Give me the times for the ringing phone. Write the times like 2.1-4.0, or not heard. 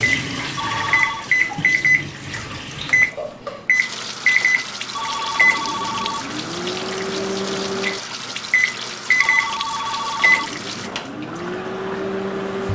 0.6-1.3, 4.9-6.3, 9.2-10.6.